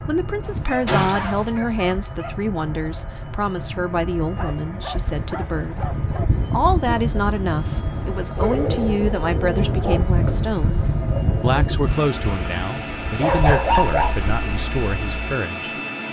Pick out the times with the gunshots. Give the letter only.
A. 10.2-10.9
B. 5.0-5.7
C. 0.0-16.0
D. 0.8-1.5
D.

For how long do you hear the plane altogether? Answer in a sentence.
The plane can be heard for 16 seconds in total.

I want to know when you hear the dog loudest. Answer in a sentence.
The loudest moment of the dog is at 14 seconds.